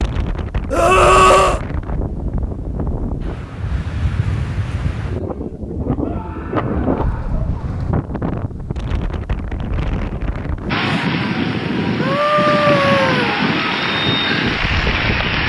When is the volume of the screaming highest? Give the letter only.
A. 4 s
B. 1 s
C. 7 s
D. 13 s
B.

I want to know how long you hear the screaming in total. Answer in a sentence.
You can hear the screaming for 4 seconds altogether.